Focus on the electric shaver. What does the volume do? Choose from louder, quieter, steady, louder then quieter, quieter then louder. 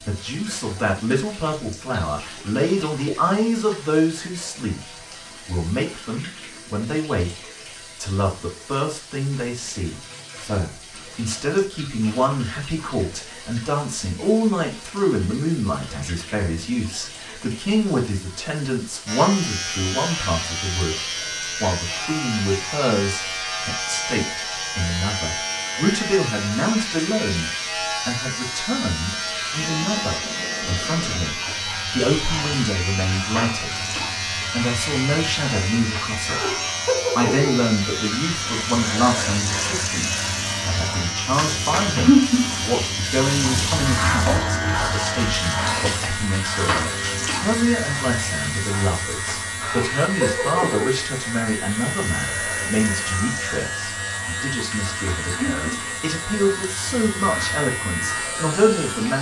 steady.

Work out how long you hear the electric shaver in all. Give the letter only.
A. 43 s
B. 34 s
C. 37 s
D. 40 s
D.